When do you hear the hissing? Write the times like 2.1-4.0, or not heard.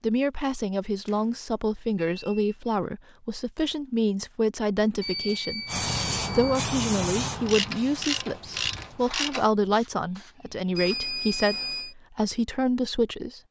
5.7-11.2.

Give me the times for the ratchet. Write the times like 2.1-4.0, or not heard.
7.5-9.4.